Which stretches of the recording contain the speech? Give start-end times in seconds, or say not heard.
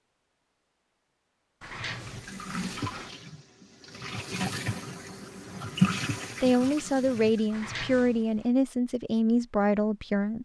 6.4-10.4.